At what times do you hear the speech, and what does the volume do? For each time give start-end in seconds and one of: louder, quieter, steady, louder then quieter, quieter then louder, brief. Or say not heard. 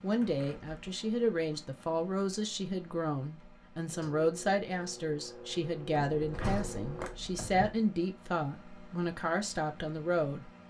0.0-10.4 steady.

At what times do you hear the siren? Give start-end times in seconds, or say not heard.
not heard.